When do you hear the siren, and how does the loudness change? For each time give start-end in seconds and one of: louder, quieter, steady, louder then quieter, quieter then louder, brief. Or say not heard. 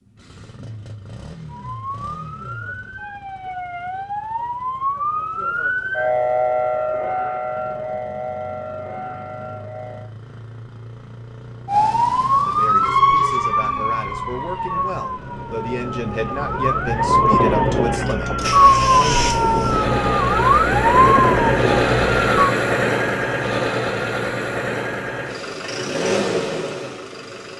1.4-10.1 louder then quieter
11.7-22.5 quieter then louder.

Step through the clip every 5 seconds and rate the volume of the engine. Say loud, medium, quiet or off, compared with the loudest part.
quiet, quiet, quiet, medium, loud, medium.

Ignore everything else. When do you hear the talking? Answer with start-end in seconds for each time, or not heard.
12.4-19.3.